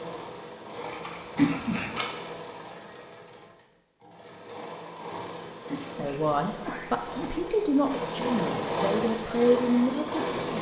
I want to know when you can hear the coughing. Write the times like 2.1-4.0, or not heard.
1.4-2.0, 5.7-7.4.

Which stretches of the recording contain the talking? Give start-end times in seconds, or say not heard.
6.0-10.4.